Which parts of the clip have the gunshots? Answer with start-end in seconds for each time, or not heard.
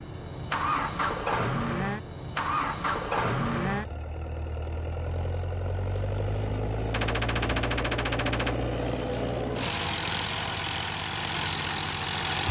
6.9-8.6.